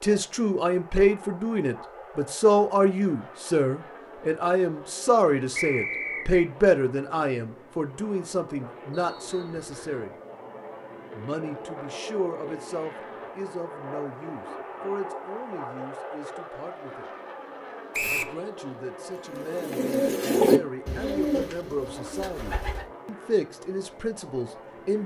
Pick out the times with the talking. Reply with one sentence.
The talking can be heard from 0.0 to 10.1 s, from 11.2 to 17.1 s and from 18.1 to 25.0 s.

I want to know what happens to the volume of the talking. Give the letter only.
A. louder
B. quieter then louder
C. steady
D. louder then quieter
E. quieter
B.